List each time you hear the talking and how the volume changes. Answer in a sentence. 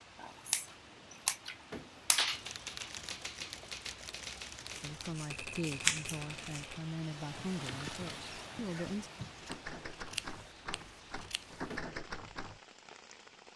The talking can be heard from 4.8 to 9.1 s, at a steady volume.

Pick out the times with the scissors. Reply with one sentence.
You can hear the scissors from 0.2 to 2.4 s, from 4.8 to 6.7 s and from 9.3 to 11.6 s.